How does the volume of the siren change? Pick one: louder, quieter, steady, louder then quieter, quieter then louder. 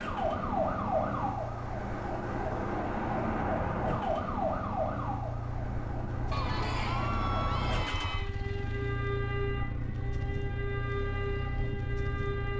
quieter.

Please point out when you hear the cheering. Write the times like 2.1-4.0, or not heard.
6.3-8.3.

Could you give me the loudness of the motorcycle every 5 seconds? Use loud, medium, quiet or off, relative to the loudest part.
medium, loud, loud.